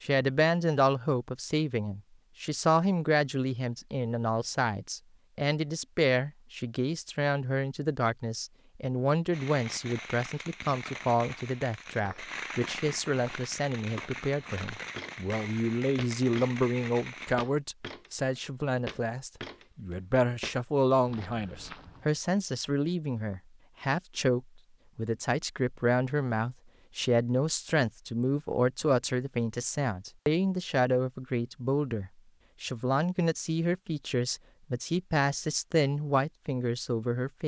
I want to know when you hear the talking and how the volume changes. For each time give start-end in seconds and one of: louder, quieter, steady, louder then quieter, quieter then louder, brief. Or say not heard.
0.0-37.4 steady.